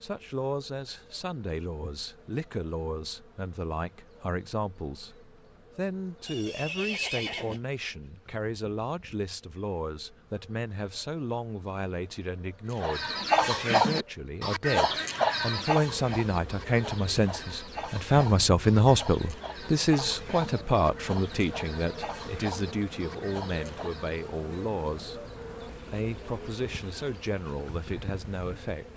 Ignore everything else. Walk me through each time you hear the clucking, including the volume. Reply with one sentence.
You can hear the clucking from 12.8 to 24.2 s, getting quieter.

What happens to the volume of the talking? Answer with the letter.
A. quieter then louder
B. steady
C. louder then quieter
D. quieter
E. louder
C.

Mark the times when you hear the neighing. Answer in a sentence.
The neighing can be heard from 6.2 to 7.6 s.